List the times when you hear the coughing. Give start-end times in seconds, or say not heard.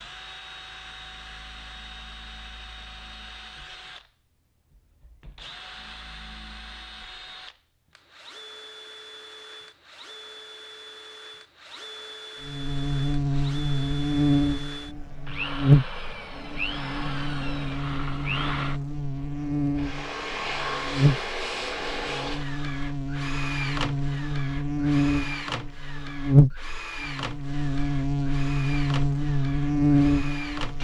not heard.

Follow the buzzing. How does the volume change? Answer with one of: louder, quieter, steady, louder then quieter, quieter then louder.
quieter then louder.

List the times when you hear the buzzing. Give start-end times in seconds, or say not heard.
12.4-30.7.